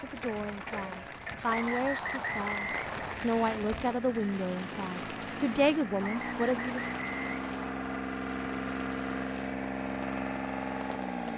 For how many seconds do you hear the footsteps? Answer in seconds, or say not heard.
not heard.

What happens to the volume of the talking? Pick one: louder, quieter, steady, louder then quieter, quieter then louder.
louder.